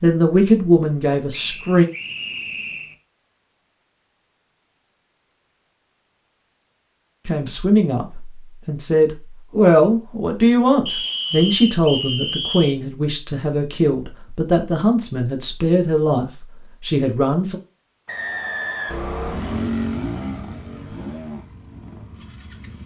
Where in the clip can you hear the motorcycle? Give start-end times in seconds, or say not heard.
18.9-22.8.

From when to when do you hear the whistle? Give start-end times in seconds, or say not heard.
1.3-3.0, 10.8-12.8, 18.1-19.6.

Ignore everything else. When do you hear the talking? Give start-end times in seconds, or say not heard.
0.0-1.9, 7.2-17.6.